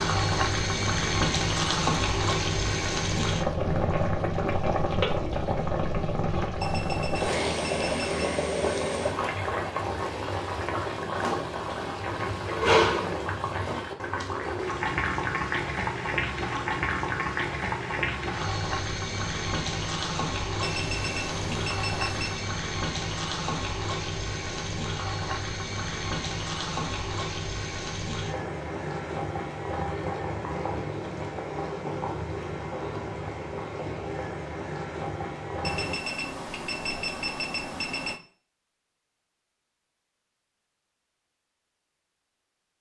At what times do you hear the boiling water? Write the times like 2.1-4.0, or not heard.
0.0-36.0.